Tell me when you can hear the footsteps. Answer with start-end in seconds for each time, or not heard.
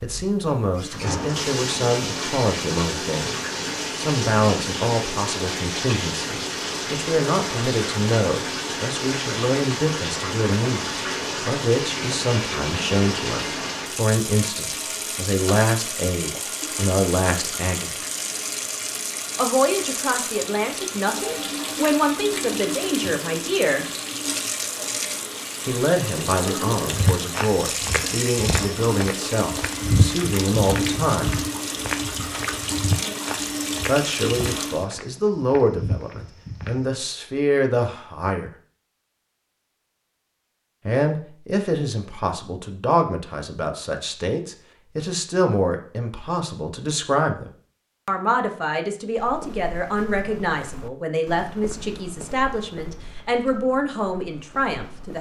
26.9-36.9, 49.1-55.1.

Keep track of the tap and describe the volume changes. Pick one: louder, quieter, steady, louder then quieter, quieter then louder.
steady.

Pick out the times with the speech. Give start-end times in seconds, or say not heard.
0.0-17.9, 19.4-23.9, 25.6-31.4, 33.9-38.5, 40.9-55.1.